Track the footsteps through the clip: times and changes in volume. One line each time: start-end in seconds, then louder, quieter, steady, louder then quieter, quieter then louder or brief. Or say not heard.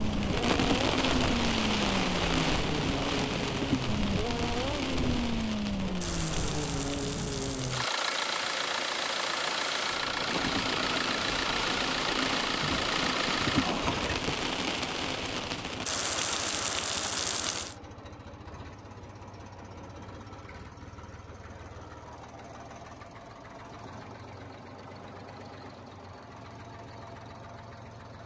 not heard.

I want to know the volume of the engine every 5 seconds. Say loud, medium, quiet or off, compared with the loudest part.
loud, loud, loud, quiet, quiet, quiet.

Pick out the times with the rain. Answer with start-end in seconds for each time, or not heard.
0.0-17.8.